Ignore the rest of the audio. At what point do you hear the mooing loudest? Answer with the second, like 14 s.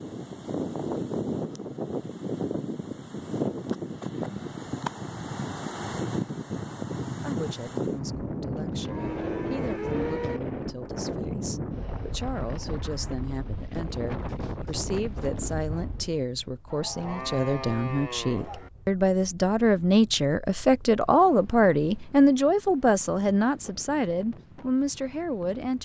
10 s.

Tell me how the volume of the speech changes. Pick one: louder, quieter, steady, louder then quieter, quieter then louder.
louder.